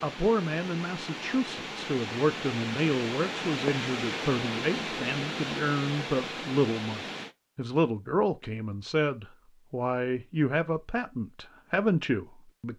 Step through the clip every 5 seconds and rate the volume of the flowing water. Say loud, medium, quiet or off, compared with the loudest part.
loud, loud, off.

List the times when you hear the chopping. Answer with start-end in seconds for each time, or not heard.
not heard.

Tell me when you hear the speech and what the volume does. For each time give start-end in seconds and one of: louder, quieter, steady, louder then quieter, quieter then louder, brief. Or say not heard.
0.0-12.7 steady.